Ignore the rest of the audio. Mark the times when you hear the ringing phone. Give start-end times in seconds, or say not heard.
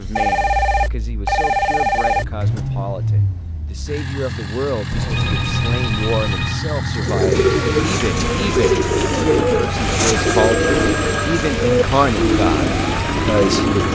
0.1-2.6, 4.9-6.6, 10.2-11.5.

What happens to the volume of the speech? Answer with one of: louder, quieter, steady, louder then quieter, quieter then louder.
louder.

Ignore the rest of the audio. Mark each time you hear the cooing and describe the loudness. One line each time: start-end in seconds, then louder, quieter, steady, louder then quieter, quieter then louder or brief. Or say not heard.
7.0-13.9 steady.